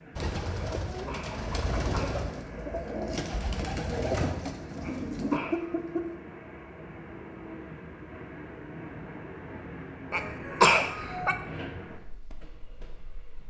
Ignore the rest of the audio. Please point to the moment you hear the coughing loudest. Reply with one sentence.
The volume of the coughing peaks at 11 seconds.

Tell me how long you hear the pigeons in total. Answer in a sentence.
You can hear the pigeons for 6 seconds altogether.